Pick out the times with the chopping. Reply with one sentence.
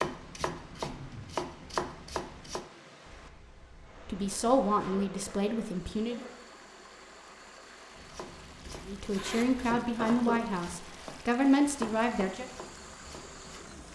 You can hear the chopping from 0.0 to 2.6 s and from 8.0 to 13.8 s.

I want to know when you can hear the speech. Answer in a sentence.
The speech can be heard from 4.0 to 6.2 s and from 8.8 to 12.5 s.